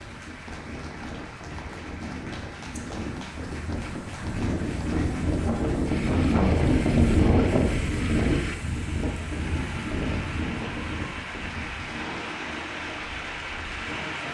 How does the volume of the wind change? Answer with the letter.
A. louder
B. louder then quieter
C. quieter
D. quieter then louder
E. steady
B.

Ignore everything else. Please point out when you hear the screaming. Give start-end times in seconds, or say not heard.
not heard.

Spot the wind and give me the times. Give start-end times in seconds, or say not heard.
0.0-14.2.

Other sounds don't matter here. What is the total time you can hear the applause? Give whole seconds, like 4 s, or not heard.
14 s.